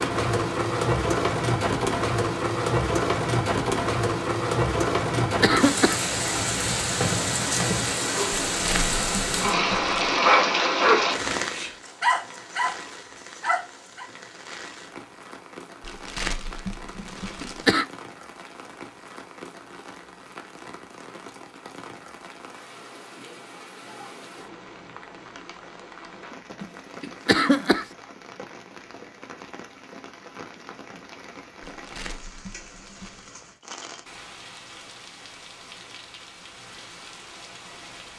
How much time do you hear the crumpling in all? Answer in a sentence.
You can hear the crumpling for 5 seconds altogether.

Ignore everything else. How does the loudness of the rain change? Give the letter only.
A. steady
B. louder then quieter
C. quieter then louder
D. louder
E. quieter
E.